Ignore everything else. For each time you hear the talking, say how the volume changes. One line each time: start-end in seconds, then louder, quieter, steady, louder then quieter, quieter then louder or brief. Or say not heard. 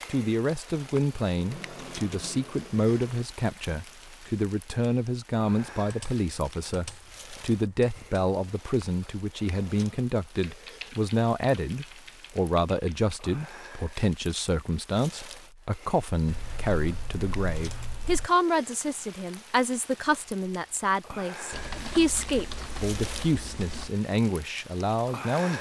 0.1-25.5 steady.